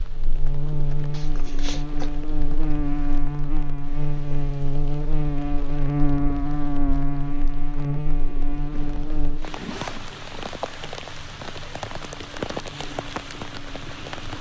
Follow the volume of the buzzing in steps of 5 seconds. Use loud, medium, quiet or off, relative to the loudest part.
loud, loud, quiet.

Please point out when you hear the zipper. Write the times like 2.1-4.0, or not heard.
1.1-2.1, 8.7-10.1.